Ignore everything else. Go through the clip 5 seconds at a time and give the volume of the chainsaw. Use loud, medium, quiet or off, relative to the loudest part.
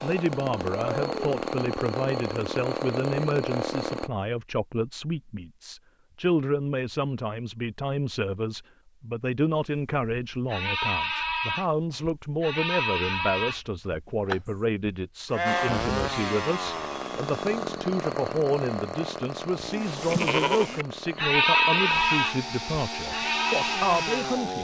loud, off, off, loud, loud.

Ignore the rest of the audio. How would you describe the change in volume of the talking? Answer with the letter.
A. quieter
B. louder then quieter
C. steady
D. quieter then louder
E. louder
C.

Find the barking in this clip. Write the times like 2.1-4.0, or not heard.
not heard.